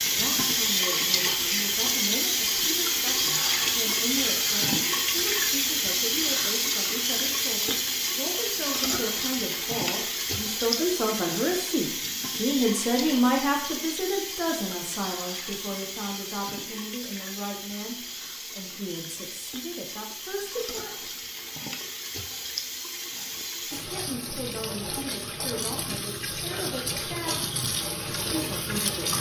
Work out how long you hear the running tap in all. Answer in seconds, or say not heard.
29 s.